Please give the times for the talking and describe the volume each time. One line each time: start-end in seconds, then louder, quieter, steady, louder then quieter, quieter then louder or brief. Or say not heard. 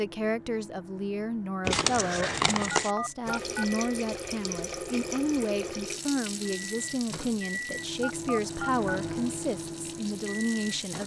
0.0-11.0 steady.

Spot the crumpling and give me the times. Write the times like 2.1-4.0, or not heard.
1.6-2.9.